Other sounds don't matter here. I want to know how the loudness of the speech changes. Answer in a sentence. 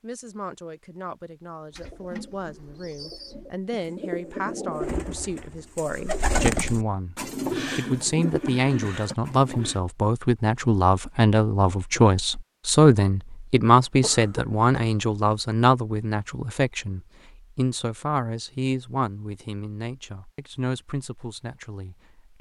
The volume of the speech goes up, then down.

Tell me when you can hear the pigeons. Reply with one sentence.
The pigeons can be heard from 1.8 to 9.8 s.